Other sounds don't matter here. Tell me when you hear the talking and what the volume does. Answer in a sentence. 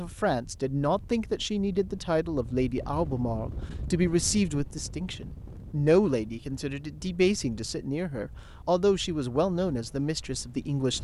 The talking can be heard from 0.0 to 10.9 s, at a steady volume.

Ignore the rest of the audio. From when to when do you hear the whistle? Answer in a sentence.
The whistle can't be heard in this clip.